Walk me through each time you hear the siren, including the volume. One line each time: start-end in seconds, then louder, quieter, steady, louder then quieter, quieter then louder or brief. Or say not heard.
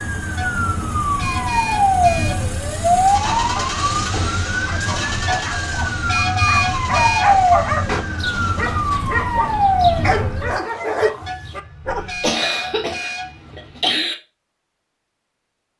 0.0-10.6 quieter then louder.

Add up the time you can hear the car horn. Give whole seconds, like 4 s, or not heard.
7 s.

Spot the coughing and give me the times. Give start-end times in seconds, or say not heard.
4.0-4.4, 12.2-14.2.